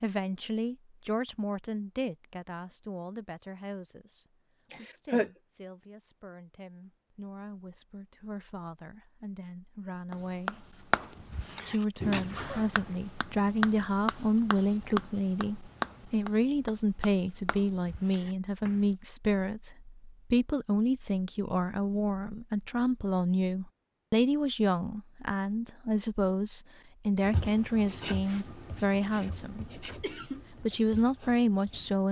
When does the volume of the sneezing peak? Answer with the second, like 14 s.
5 s.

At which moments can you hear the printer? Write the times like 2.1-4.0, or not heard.
not heard.